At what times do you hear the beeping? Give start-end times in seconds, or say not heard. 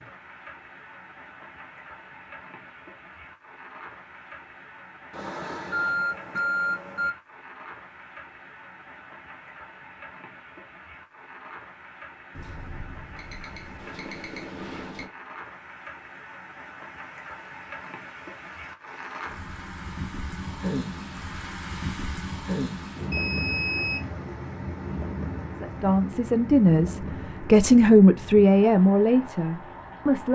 5.1-7.1, 12.3-15.1, 23.1-24.1.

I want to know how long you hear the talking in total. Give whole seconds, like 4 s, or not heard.
5 s.